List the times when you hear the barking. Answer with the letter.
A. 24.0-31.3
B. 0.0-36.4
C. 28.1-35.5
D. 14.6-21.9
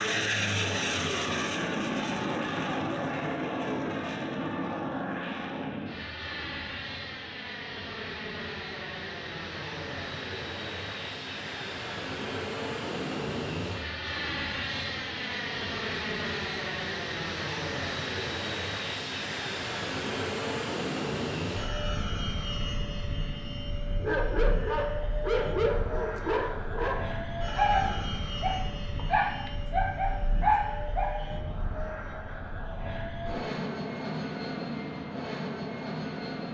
A.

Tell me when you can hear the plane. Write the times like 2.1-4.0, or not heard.
0.0-36.4.